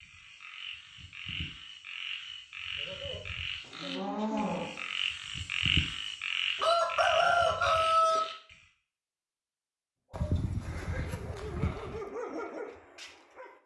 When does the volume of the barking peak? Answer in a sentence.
The volume of the barking peaks at 12 seconds.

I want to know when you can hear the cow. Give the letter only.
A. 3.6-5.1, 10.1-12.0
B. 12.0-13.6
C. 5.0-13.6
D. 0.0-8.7
A.